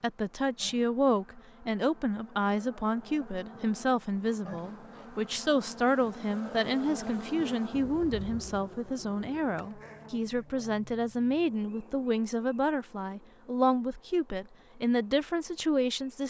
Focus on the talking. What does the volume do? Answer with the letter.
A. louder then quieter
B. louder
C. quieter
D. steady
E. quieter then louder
D.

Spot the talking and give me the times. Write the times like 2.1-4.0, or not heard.
0.0-16.2.